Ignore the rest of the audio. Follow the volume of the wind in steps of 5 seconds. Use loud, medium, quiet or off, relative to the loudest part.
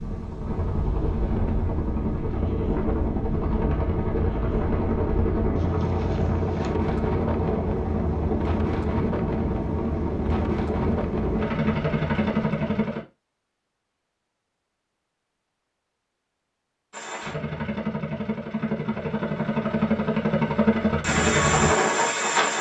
loud, loud, loud, off, off.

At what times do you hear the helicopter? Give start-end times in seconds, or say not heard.
0.0-13.0, 16.9-22.5.